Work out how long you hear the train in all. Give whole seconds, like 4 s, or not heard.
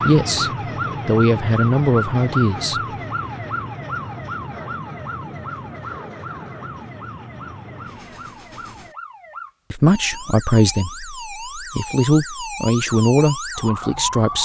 9 s.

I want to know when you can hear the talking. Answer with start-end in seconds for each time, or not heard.
0.0-2.8, 9.7-14.4.